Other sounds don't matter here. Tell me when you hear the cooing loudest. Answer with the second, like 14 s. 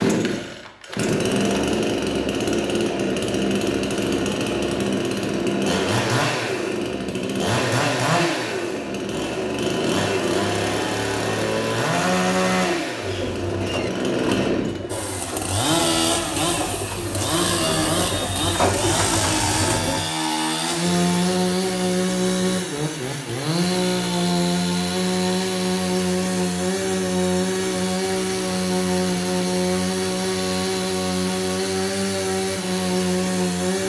19 s.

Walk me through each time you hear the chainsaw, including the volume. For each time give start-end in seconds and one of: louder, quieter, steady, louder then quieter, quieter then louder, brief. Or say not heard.
0.0-33.8 steady.